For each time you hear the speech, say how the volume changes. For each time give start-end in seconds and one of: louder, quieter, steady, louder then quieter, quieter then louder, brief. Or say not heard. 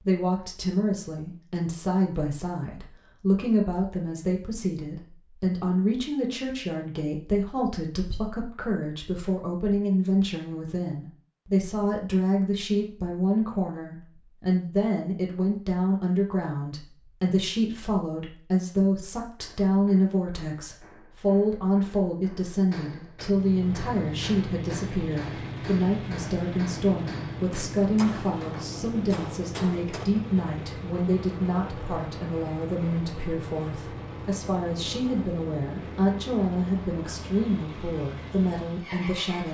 0.0-39.4 steady.